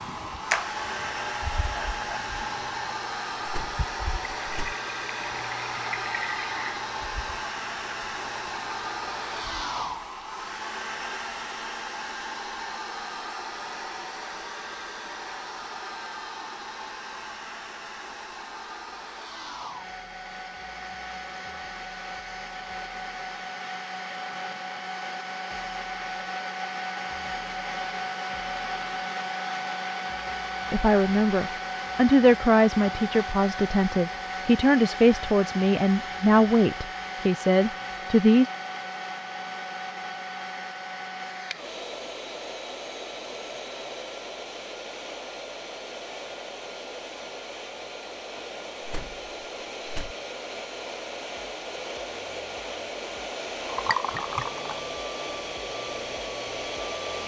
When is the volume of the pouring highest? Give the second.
54 s.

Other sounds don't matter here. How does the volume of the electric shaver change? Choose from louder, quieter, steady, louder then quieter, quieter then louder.
quieter.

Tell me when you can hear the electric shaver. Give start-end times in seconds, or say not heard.
0.0-9.8.